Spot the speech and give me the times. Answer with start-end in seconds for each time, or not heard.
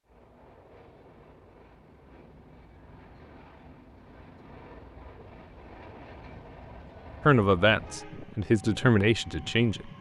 7.2-9.9.